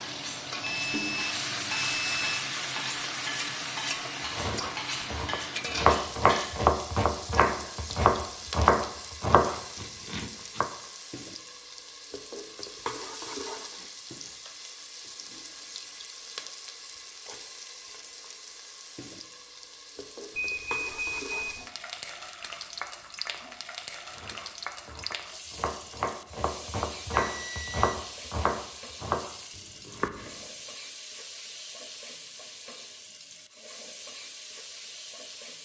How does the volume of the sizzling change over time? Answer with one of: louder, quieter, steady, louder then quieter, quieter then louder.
quieter.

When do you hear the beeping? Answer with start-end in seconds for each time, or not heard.
0.6-2.5, 20.4-21.6, 27.2-28.0.